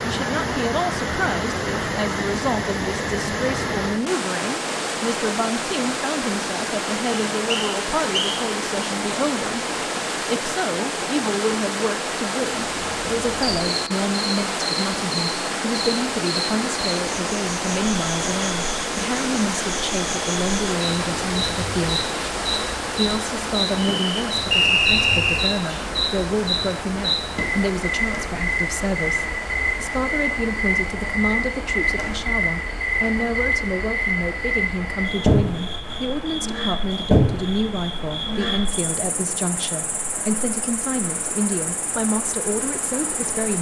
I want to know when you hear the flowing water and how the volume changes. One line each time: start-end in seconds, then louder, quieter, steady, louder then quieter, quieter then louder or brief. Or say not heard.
0.0-43.5 quieter.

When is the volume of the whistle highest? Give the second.
25 s.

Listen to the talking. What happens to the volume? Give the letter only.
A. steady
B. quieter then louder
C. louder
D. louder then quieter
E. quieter
A.